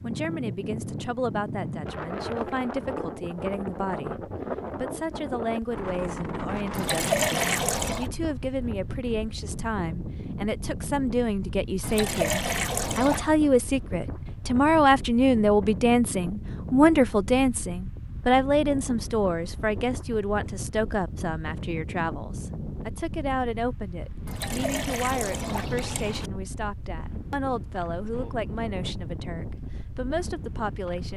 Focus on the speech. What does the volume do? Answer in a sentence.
The loudness of the speech goes up, then down.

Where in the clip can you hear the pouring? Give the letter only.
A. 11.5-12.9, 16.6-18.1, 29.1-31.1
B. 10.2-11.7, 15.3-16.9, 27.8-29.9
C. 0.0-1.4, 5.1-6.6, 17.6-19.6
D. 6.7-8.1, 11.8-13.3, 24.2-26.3
D.